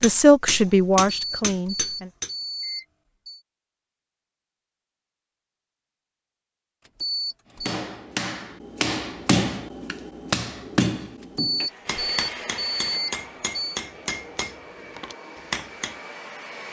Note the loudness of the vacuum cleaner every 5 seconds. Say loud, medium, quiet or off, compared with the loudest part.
off, off, loud, loud.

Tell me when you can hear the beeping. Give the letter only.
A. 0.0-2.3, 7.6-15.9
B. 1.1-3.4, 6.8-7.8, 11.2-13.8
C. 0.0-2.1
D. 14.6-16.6
B.